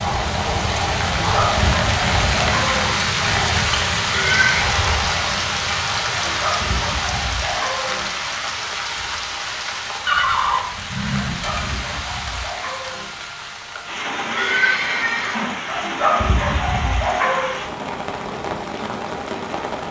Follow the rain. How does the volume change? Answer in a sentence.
The volume of the rain goes down.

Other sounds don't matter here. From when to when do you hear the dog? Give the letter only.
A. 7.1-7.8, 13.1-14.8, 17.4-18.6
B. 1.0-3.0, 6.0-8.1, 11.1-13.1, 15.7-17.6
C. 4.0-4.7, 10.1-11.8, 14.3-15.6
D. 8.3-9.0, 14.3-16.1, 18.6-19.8
B.